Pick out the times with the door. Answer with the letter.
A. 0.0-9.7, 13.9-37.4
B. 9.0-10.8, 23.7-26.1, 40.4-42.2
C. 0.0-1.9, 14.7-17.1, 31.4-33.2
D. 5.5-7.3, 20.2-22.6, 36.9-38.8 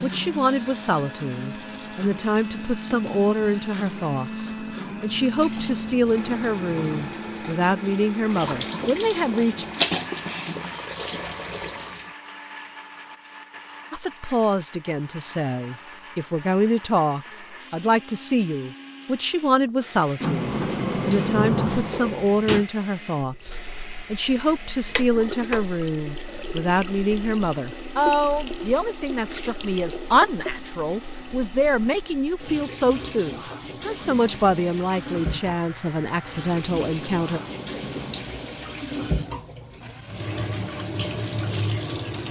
D.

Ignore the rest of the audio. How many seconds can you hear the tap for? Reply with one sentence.
You can hear the tap for 31 seconds altogether.